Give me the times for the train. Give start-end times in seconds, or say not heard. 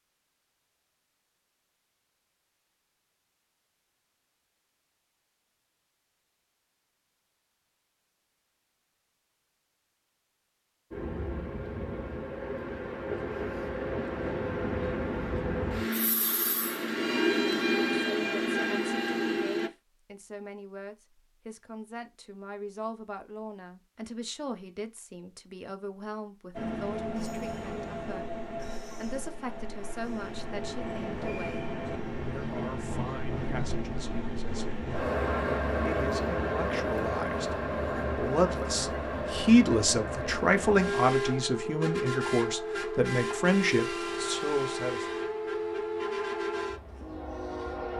10.9-19.7, 26.6-47.9.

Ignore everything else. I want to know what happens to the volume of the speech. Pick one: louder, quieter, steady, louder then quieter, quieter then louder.
louder.